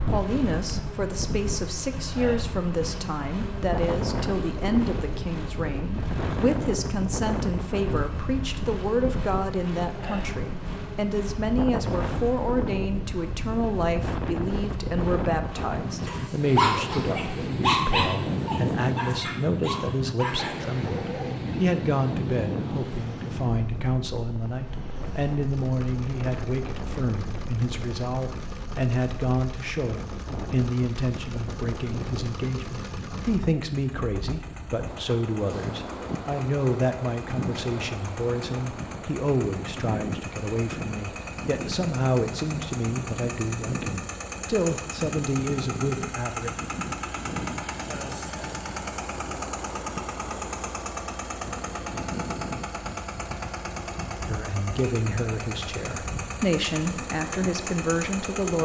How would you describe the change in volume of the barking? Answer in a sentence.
The loudness of the barking goes down.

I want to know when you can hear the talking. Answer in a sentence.
The talking can be heard from 0.0 to 46.5 s and from 54.2 to 58.6 s.